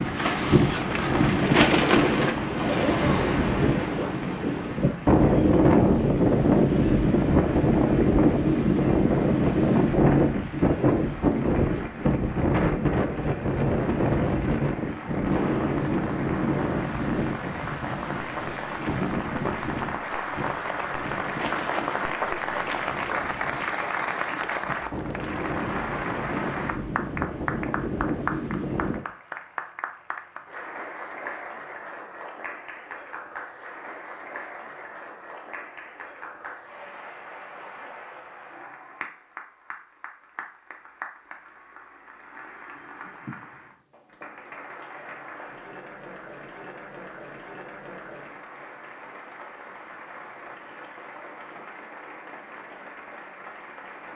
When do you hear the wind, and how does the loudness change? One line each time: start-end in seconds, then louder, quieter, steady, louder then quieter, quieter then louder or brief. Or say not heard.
0.0-29.1 quieter.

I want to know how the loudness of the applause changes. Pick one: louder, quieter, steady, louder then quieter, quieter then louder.
louder then quieter.